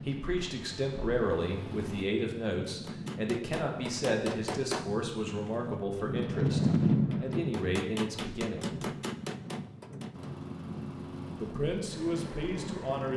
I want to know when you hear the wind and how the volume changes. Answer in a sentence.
You can hear the wind from 0.0 to 13.1 s, getting louder then quieter.